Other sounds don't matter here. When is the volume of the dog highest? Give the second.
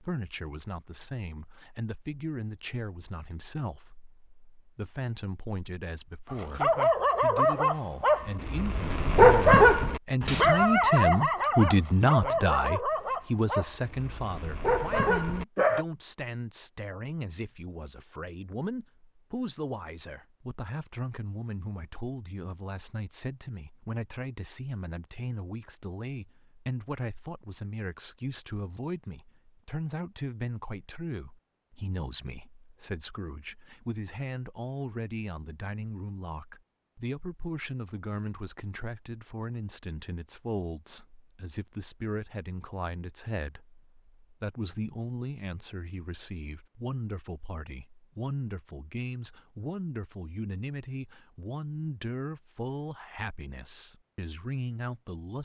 9 s.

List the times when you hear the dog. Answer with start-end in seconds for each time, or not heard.
6.3-15.8.